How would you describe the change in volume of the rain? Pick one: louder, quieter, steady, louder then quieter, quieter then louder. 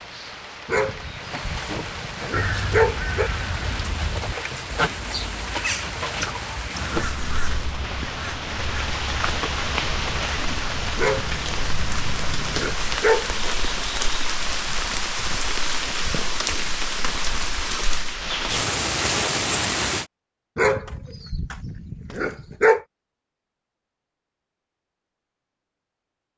louder.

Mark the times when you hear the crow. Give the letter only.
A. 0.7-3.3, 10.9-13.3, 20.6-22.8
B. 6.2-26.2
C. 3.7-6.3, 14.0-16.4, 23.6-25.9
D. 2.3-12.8
D.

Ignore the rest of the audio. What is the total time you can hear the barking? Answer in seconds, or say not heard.
7 s.